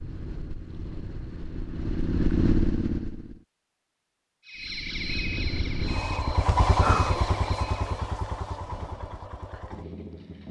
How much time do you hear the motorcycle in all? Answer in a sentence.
The motorcycle can be heard for 9 seconds in total.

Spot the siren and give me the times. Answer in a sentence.
You can hear the siren from 4.5 to 8.1 s.